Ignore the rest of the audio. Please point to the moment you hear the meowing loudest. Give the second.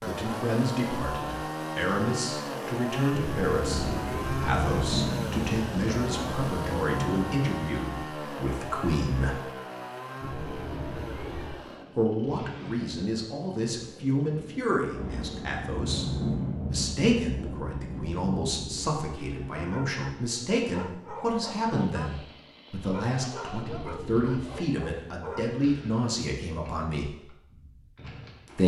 4 s.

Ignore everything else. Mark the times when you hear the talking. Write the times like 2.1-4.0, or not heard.
0.0-9.4, 11.9-16.1, 16.7-27.2.